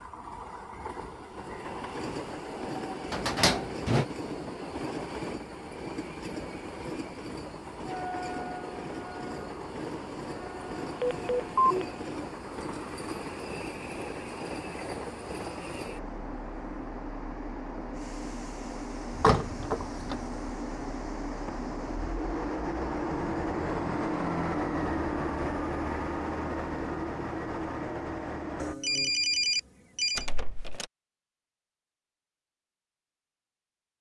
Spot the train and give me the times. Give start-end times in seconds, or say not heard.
0.0-28.8.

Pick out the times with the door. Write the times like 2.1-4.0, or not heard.
3.1-4.0, 19.1-20.2, 30.1-30.9.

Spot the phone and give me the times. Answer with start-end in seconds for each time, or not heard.
11.0-11.8, 28.6-30.2.